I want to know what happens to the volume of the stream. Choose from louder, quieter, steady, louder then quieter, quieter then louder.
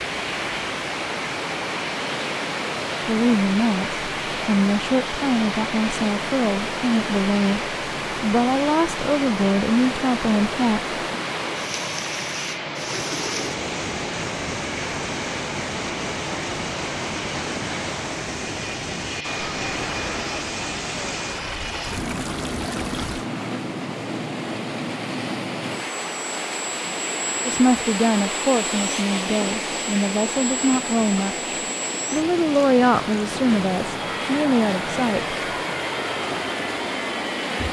steady.